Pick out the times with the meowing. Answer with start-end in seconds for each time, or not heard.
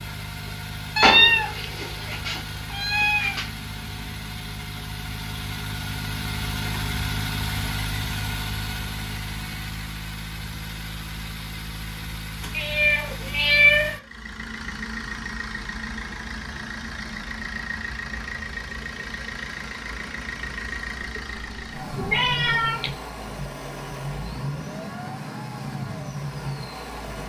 0.9-3.5, 12.5-14.0, 21.1-22.9.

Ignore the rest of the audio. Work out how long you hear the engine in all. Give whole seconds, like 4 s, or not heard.
27 s.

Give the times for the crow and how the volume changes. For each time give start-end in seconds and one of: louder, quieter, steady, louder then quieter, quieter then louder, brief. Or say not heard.
not heard.